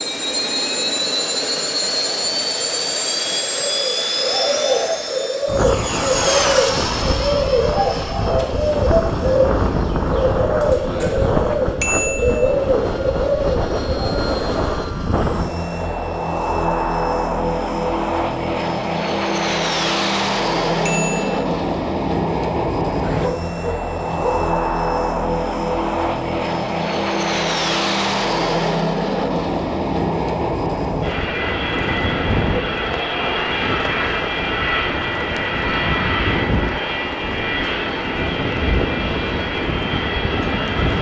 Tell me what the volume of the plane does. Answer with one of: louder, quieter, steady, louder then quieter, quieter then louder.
steady.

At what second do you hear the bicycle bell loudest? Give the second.
12 s.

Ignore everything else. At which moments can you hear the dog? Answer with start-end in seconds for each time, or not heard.
23.0-24.6.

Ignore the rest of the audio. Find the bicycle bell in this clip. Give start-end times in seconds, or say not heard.
11.8-12.6, 20.9-21.4.